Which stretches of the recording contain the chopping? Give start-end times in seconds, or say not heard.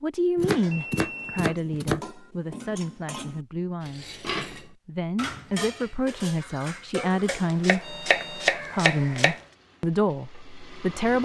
0.3-2.0, 7.2-9.3.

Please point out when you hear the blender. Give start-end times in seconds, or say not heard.
not heard.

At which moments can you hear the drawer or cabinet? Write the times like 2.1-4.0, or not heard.
not heard.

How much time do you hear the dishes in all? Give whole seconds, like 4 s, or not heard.
7 s.